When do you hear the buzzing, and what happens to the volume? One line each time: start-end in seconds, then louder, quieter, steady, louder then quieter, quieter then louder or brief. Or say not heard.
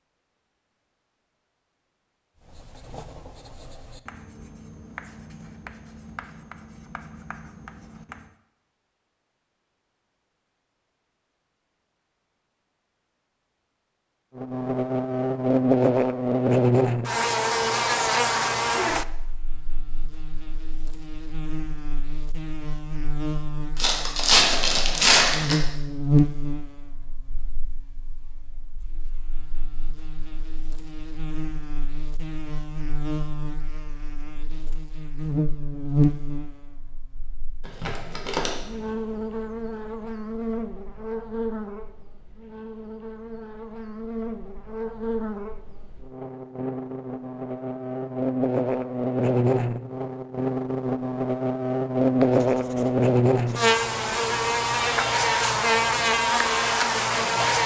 14.3-57.6 quieter then louder.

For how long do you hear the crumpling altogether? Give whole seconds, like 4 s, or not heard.
3 s.